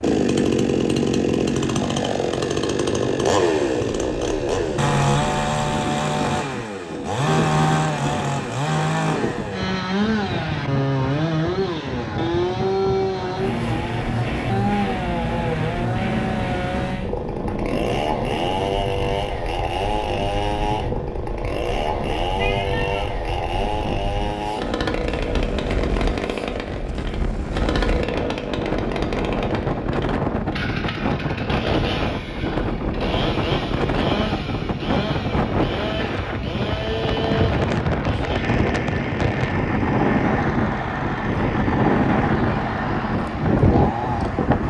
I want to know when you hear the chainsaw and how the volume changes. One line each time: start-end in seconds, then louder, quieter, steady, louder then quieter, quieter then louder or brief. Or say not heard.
0.0-44.6 quieter.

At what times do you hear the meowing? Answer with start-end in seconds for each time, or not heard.
22.4-23.1.